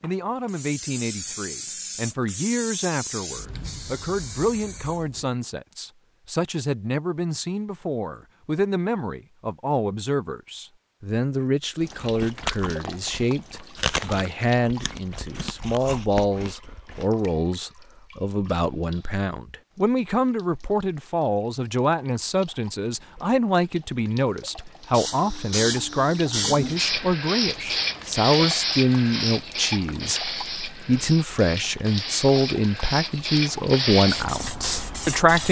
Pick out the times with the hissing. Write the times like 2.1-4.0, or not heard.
0.0-5.3, 24.9-35.4.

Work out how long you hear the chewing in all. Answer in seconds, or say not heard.
5 s.